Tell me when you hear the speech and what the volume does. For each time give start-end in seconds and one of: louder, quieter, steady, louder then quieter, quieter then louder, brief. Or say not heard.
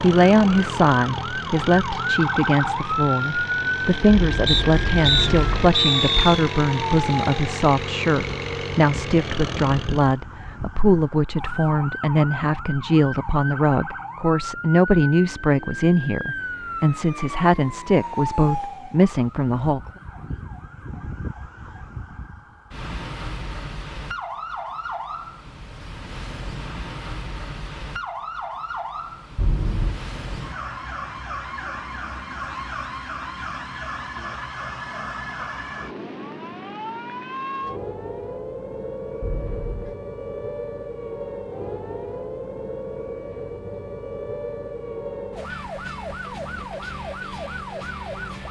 0.0-19.8 steady.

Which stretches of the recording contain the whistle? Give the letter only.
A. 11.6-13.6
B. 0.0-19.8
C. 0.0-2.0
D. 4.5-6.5
D.